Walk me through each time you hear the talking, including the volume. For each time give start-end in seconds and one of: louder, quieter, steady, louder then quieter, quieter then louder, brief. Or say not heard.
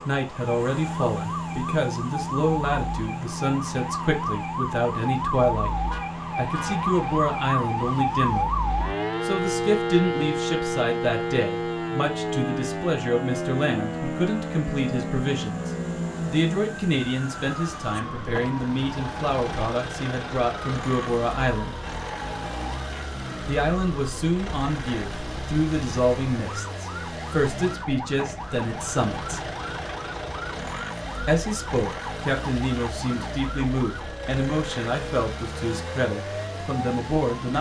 0.1-8.6 steady
9.2-21.8 steady
23.4-29.5 steady
31.2-37.5 steady.